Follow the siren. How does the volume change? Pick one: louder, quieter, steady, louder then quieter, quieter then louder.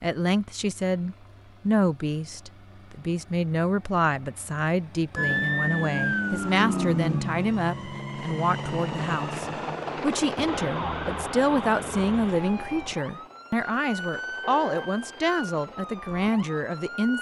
quieter.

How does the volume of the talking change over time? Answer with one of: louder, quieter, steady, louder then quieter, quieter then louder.
steady.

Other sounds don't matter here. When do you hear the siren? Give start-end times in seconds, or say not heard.
5.2-17.1.